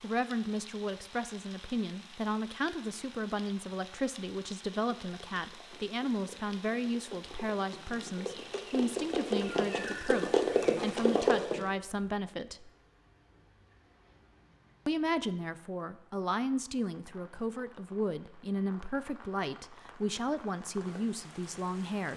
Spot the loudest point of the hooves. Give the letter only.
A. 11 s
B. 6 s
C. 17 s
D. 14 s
A.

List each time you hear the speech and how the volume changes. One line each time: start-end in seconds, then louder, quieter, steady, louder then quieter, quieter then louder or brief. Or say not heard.
0.0-12.7 steady
14.8-22.1 steady.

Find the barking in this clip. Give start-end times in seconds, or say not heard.
not heard.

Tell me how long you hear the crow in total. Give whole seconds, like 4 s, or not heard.
not heard.